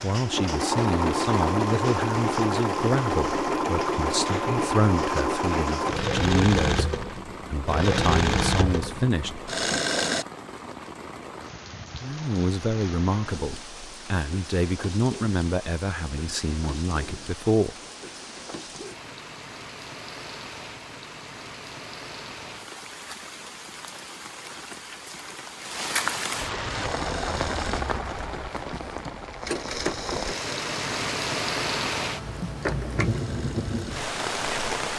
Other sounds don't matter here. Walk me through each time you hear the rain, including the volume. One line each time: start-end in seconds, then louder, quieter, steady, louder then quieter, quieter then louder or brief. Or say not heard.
0.0-34.9 louder.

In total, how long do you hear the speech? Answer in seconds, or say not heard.
15 s.